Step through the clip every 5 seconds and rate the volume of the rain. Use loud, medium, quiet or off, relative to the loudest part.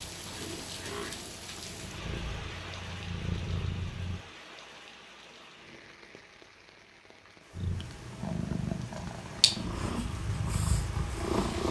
loud, medium, loud.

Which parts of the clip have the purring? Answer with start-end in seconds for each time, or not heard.
0.0-4.2, 7.5-11.6.